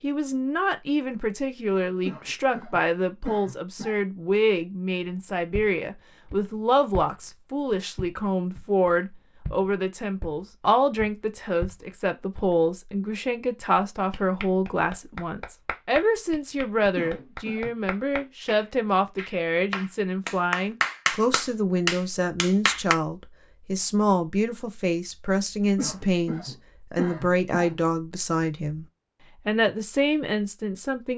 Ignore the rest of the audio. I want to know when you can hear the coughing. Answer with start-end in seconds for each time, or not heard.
1.9-4.0, 16.8-17.8, 25.8-27.8.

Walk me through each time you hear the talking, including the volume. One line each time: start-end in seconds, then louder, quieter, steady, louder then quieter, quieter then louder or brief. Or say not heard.
0.0-28.9 steady
29.4-31.1 brief.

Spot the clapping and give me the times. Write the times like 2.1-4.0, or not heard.
14.1-22.9.